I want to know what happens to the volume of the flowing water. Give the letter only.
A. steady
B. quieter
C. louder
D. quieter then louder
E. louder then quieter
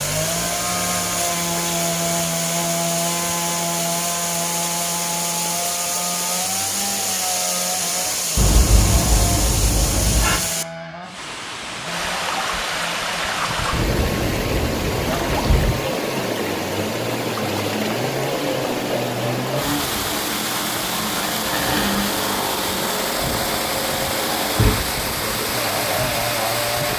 A.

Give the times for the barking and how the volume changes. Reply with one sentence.
The barking can't be heard in this clip.